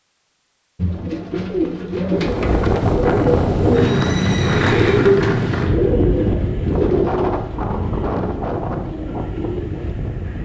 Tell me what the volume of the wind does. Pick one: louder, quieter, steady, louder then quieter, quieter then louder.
quieter.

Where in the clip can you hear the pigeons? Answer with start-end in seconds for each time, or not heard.
0.8-9.9.